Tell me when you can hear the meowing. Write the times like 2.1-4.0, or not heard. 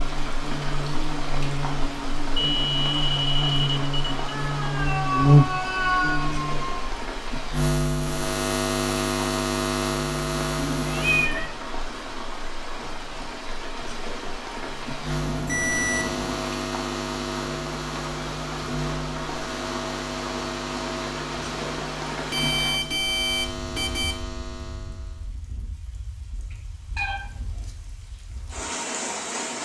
4.2-6.8, 10.8-11.5, 26.9-27.7.